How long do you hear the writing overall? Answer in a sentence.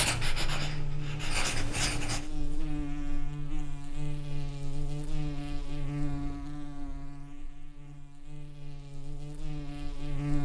You can hear the writing for 2 seconds altogether.